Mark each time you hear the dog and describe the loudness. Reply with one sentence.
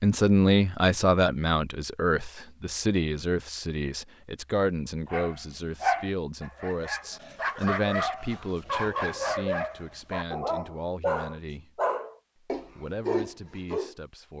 You can hear the dog from 5.1 to 13.9 s, at a steady volume.